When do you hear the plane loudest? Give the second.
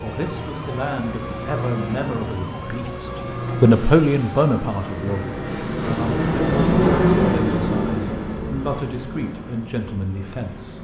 7 s.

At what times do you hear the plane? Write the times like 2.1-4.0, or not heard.
0.2-10.7.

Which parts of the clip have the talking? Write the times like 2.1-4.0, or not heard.
0.0-10.7.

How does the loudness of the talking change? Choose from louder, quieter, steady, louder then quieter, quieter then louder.
louder then quieter.